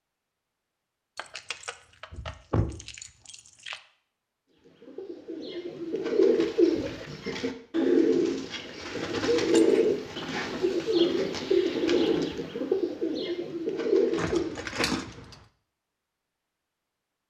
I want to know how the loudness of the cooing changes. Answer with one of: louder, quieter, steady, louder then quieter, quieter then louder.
steady.